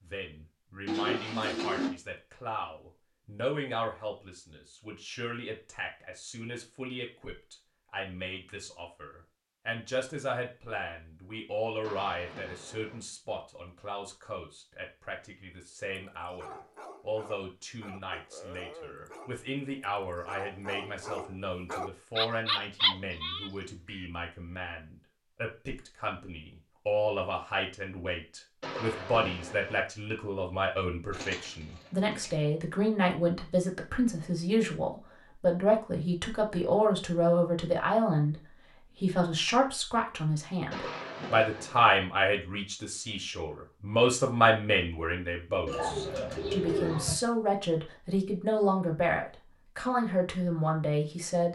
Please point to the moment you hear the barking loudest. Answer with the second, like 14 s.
23 s.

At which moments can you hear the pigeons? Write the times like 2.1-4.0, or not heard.
0.8-1.9, 31.1-32.3, 45.6-47.2.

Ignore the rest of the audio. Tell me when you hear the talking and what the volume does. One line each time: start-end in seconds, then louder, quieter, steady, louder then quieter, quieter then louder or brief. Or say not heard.
0.0-38.4 louder
39.0-51.5 steady.